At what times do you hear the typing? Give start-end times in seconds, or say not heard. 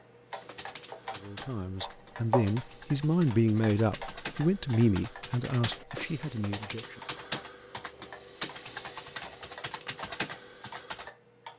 0.3-11.1.